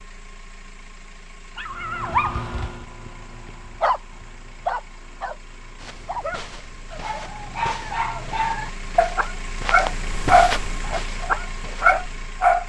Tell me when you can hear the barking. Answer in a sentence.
The barking can be heard from 1.6 to 12.6 s.